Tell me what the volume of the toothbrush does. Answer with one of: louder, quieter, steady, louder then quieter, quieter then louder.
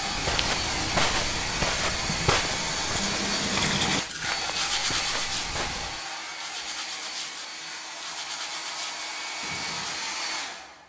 louder then quieter.